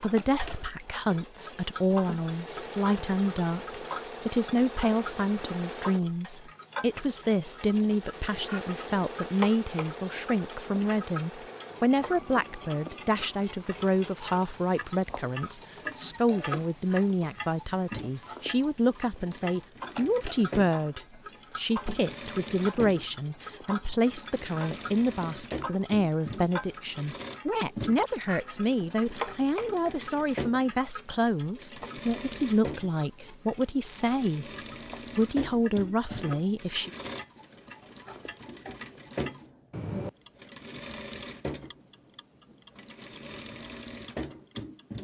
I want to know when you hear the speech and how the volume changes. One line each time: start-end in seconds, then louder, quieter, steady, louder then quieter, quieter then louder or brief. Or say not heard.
0.0-34.5 steady
35.1-36.9 brief.